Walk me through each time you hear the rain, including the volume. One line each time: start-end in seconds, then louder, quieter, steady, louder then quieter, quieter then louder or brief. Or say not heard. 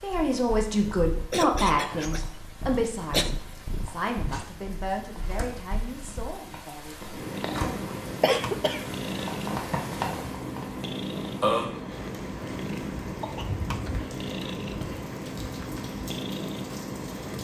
0.0-17.4 louder then quieter.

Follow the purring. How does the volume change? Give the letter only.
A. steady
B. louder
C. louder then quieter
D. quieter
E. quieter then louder
B.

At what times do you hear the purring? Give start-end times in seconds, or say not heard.
0.0-17.4.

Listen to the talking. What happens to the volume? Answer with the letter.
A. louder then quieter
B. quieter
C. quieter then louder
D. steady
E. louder
B.